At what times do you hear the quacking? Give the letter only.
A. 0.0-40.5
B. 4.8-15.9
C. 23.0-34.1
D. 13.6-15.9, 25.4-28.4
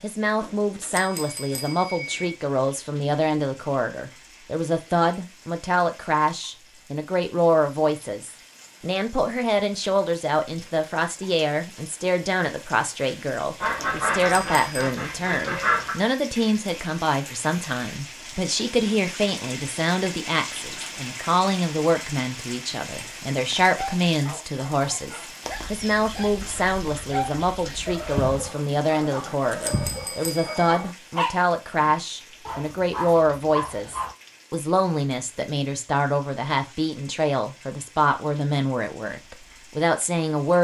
D.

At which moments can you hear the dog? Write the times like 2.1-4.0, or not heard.
23.0-34.1.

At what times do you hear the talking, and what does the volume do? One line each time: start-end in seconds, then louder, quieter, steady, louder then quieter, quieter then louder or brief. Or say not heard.
0.0-40.5 steady.